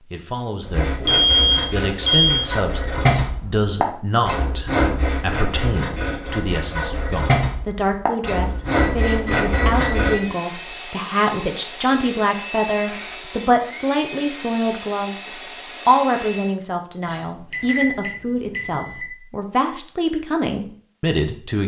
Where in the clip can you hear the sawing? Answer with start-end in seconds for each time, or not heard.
0.7-10.2.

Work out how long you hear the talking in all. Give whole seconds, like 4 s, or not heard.
21 s.